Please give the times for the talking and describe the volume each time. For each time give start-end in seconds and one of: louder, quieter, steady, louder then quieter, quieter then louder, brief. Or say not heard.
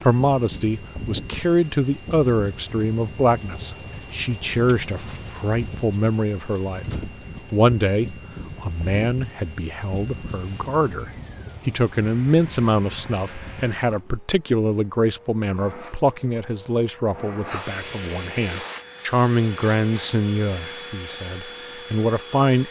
0.0-22.6 steady.